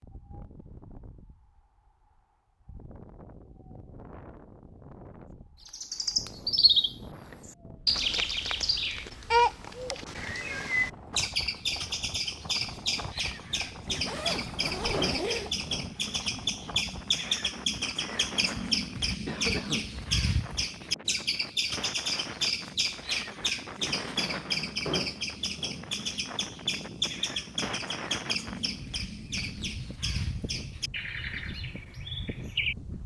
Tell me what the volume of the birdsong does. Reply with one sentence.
The loudness of the birdsong goes down.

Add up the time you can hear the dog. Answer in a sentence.
The dog can't be heard in this clip.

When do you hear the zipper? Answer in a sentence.
The zipper can be heard from 14.1 to 15.5 s.